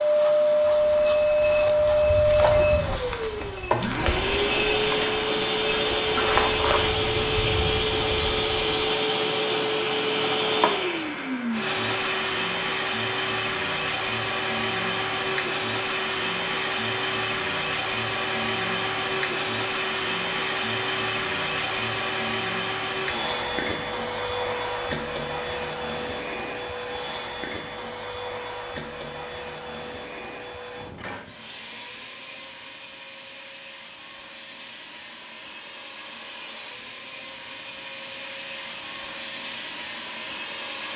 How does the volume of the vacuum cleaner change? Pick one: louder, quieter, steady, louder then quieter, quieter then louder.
quieter.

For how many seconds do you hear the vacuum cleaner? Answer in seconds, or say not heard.
41 s.